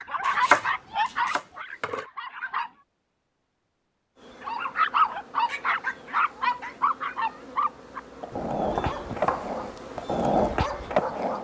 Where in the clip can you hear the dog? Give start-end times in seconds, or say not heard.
0.0-2.7, 4.4-11.3.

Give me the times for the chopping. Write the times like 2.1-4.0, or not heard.
0.2-0.7, 1.2-2.0, 8.3-9.6.